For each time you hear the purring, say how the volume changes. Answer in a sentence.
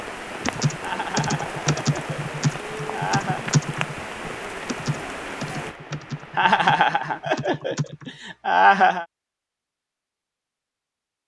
You can't hear the purring here.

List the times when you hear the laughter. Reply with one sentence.
You can hear the laughter from 0.8 to 3.5 s and from 6.3 to 9.1 s.